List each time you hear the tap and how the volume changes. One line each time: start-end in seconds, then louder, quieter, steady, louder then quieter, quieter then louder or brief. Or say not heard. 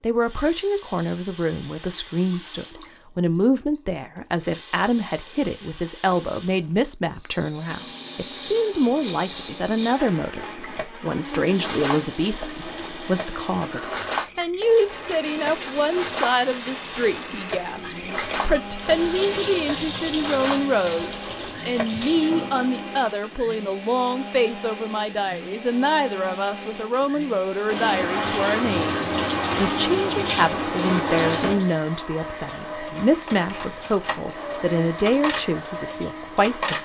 0.0-23.0 louder
27.6-36.7 quieter.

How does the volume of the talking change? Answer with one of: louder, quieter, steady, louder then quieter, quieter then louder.
steady.